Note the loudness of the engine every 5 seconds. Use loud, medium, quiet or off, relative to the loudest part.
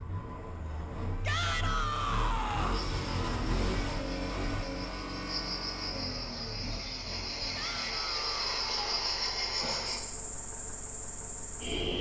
loud, medium, quiet.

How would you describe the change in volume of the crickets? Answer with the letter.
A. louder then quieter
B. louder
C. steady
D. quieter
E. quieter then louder
A.